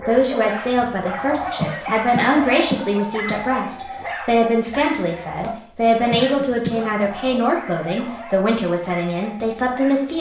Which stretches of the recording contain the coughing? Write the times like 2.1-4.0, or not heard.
1.6-3.4, 6.1-6.8.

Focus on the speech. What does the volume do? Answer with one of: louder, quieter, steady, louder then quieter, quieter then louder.
steady.